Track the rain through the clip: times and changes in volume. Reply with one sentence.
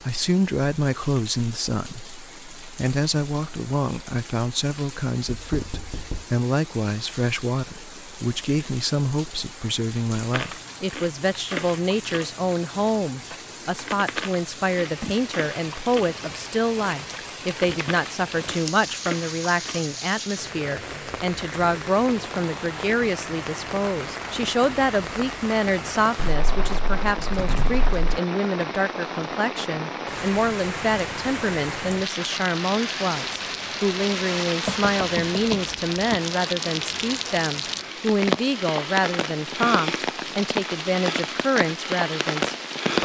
You can hear the rain from 0.0 to 42.9 s, getting louder.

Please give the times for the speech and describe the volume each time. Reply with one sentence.
You can hear the speech from 0.0 to 42.9 s, at a steady volume.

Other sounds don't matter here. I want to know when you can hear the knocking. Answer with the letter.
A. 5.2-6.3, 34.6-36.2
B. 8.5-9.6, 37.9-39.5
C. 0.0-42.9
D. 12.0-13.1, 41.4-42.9
A.